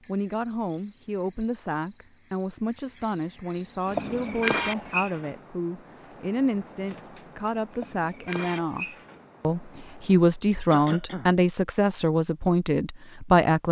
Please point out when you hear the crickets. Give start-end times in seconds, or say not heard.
0.0-10.4.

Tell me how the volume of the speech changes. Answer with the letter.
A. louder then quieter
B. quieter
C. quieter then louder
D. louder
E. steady
D.